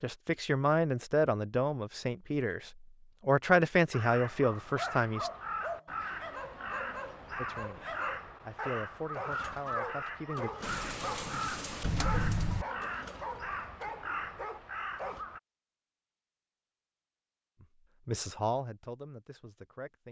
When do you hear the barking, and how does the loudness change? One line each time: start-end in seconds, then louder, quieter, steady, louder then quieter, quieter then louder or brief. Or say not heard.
4.8-15.2 steady.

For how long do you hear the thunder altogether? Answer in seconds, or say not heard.
2 s.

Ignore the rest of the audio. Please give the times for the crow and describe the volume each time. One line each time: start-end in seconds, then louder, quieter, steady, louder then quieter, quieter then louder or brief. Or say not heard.
3.9-15.4 steady.